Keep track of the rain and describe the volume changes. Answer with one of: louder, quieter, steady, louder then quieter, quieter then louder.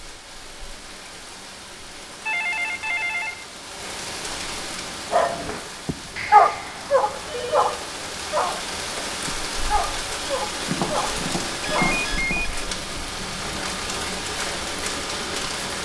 louder.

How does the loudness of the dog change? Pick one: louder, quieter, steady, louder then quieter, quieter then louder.
quieter.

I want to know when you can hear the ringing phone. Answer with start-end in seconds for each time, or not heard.
2.2-3.5, 6.2-7.8, 11.6-12.4.